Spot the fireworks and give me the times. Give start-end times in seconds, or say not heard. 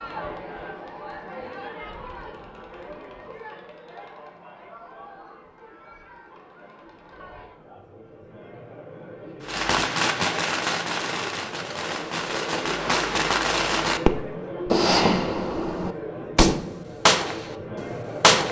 9.4-18.4.